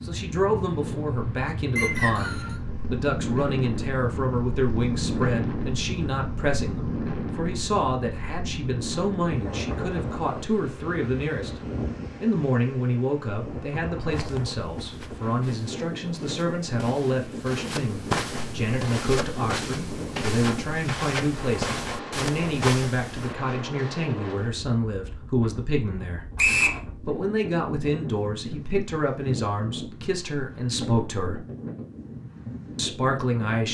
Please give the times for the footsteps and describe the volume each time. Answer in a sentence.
The footsteps can be heard from 14.1 to 23.4 s, getting louder.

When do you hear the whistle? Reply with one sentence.
The whistle can be heard from 1.8 to 2.5 s and from 26.4 to 26.8 s.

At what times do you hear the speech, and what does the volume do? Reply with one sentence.
The speech can be heard from 0.0 to 11.6 s, at a steady volume; from 12.2 to 26.2 s, at a steady volume; from 26.9 to 31.4 s, getting quieter then louder; and briefly from 32.8 to 33.6 s.